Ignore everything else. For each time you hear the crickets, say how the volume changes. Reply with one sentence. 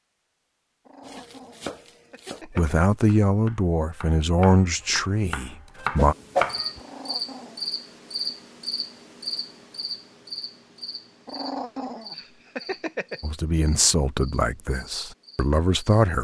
You can hear the crickets from 6.5 to 16.1 s, getting quieter.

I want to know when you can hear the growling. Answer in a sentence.
You can hear the growling from 0.8 to 2.7 s, from 6.8 to 7.7 s and from 11.2 to 13.2 s.